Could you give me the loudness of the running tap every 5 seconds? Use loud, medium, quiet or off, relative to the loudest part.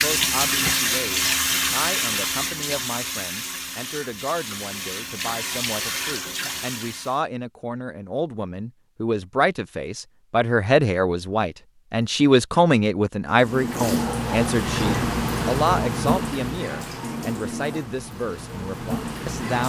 loud, medium, loud, loud.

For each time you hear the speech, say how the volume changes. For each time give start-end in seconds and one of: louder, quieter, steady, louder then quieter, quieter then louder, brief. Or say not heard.
0.0-19.6 louder then quieter.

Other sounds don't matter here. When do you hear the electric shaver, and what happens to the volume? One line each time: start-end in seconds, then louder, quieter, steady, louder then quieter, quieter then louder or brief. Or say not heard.
not heard.